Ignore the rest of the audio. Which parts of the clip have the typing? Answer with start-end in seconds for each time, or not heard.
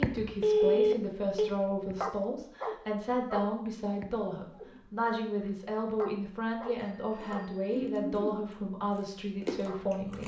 not heard.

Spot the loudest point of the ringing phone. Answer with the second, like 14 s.
1 s.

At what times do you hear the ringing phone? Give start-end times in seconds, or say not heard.
0.4-1.5, 6.9-7.8.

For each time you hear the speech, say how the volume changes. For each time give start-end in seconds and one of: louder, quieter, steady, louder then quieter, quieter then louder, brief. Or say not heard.
0.0-10.2 steady.